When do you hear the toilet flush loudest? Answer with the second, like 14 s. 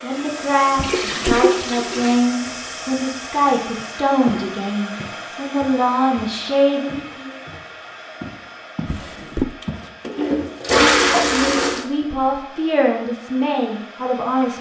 11 s.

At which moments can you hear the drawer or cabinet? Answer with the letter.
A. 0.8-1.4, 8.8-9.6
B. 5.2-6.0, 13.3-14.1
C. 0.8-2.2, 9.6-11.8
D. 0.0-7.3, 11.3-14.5
A.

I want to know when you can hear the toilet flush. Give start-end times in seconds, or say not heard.
0.8-2.2, 9.6-11.8.